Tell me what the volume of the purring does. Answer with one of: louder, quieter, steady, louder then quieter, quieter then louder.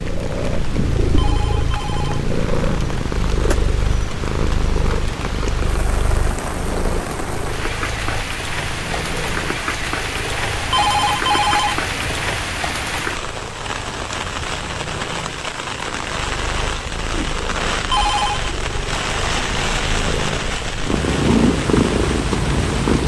quieter then louder.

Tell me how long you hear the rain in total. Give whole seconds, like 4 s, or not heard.
23 s.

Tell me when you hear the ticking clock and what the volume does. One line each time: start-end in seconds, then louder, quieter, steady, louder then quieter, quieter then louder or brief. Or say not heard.
not heard.